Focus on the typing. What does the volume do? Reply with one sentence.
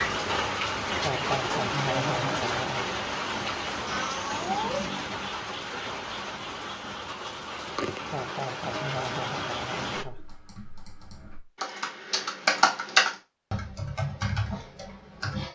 The loudness of the typing goes up, then down.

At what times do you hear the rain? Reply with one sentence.
You can hear the rain from 0.0 to 10.1 s.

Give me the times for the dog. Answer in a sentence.
The dog can't be heard in this clip.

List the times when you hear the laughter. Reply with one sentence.
The laughter can be heard from 1.0 to 3.0 s and from 8.1 to 10.2 s.